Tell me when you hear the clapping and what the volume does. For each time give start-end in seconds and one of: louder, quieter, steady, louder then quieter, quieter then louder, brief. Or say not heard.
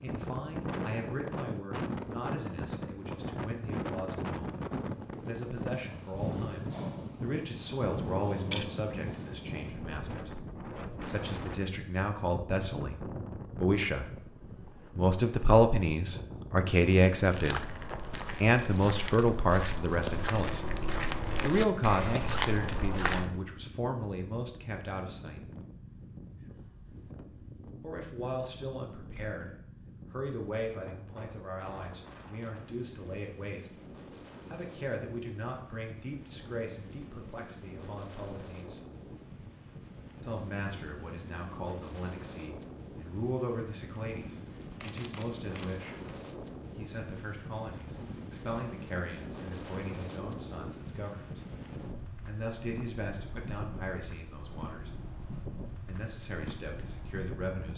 not heard.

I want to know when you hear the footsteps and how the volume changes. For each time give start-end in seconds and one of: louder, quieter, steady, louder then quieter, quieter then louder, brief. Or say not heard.
17.1-23.3 louder.